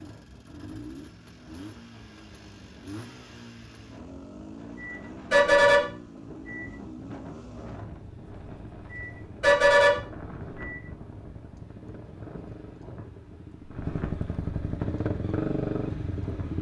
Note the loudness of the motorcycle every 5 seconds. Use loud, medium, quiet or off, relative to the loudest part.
quiet, quiet, medium, loud.